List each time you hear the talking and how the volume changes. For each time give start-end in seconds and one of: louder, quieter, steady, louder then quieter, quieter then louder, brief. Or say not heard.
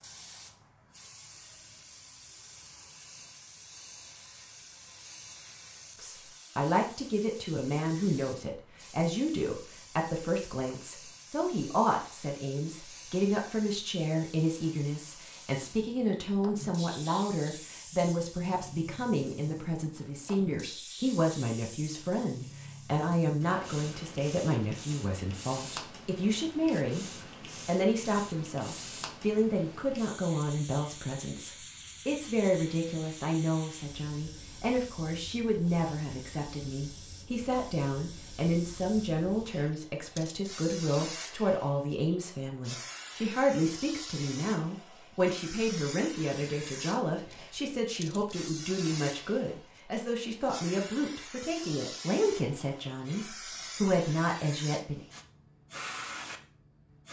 6.0-55.0 steady.